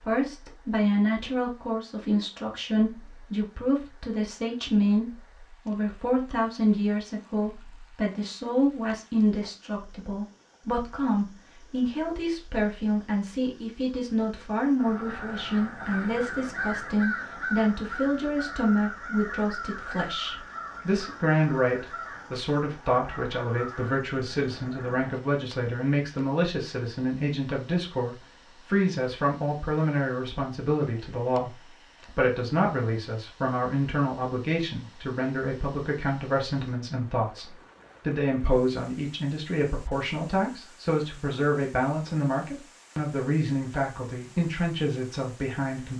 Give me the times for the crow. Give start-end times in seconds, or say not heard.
14.8-25.1.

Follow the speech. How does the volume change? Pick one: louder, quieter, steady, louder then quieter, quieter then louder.
steady.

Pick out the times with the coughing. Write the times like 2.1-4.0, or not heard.
not heard.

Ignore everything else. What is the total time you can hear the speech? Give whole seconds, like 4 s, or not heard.
46 s.